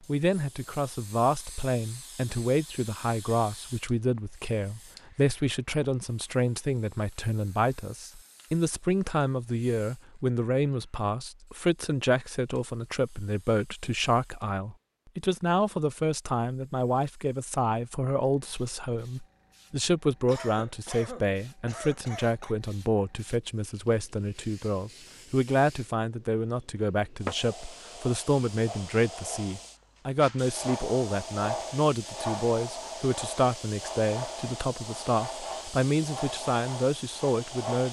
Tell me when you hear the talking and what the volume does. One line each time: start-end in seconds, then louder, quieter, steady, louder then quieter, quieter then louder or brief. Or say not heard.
0.1-37.8 steady.